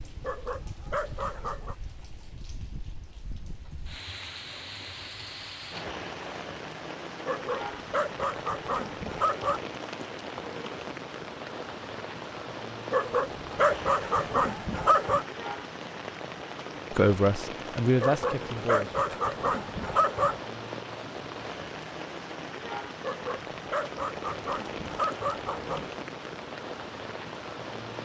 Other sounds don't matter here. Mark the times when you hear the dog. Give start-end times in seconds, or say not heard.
0.2-1.8, 7.2-9.6, 12.9-15.2, 18.0-20.4, 23.0-25.9.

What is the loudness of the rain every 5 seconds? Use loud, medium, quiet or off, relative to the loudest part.
medium, loud, loud, loud, loud, loud.